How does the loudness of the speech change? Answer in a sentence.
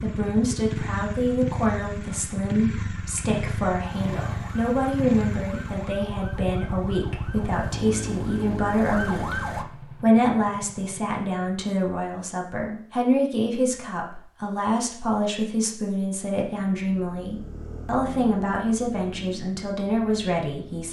The loudness of the speech stays about the same.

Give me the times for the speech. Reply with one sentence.
You can hear the speech from 0.0 to 9.3 s and from 10.0 to 20.8 s.